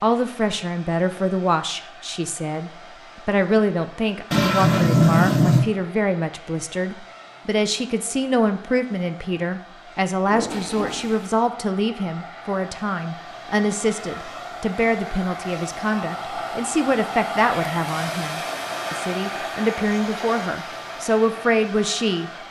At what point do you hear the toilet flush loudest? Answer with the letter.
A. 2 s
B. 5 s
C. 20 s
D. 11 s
B.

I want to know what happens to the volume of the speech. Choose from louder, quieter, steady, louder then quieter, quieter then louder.
steady.